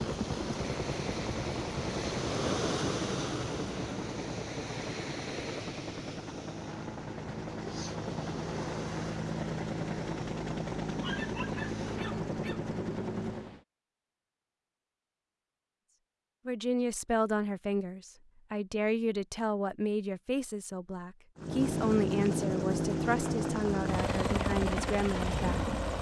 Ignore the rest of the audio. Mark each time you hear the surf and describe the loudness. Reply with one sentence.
The surf can be heard from 0.0 to 13.7 s, getting quieter.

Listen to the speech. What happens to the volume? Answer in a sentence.
The volume of the speech stays about the same.